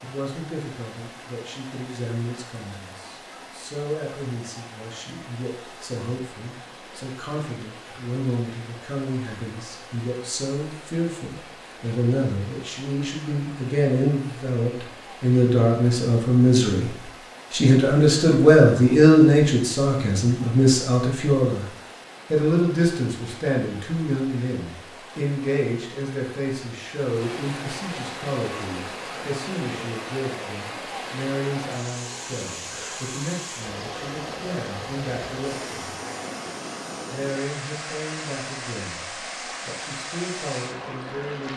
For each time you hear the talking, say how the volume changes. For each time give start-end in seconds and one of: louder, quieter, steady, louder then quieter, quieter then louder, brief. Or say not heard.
0.0-21.6 louder
22.3-35.9 quieter
37.1-41.5 quieter then louder.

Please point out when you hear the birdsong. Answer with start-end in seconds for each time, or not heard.
not heard.